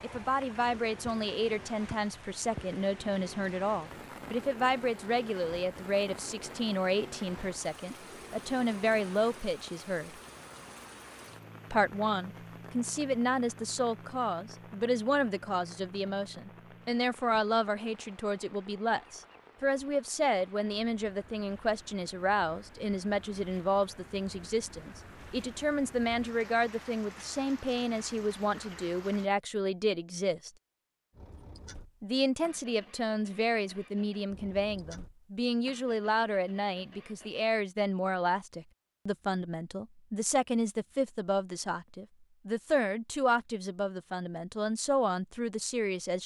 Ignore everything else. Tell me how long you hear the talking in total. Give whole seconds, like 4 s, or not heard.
43 s.